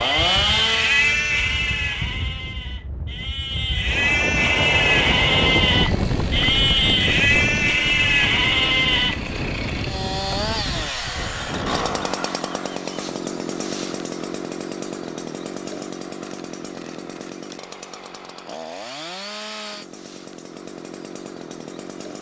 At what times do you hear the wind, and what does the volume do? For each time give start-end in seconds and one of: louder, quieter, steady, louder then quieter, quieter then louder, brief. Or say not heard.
0.0-12.2 louder then quieter.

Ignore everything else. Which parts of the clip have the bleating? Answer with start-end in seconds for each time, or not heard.
0.0-9.2.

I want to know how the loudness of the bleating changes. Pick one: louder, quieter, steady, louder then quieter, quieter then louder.
quieter then louder.